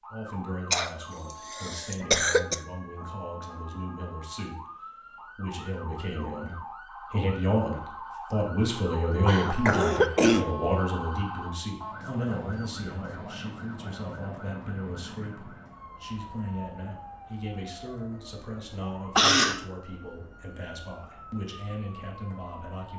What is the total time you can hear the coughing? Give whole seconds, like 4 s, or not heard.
4 s.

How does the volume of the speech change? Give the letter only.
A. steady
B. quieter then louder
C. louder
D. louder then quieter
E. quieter
D.